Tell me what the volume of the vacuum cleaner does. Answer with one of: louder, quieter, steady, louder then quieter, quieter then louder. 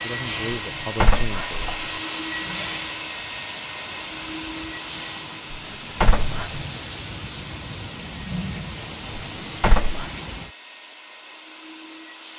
quieter.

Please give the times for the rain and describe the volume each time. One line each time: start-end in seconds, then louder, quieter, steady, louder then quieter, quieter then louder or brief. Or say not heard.
0.0-10.5 louder.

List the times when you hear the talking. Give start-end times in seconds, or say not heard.
0.0-1.8.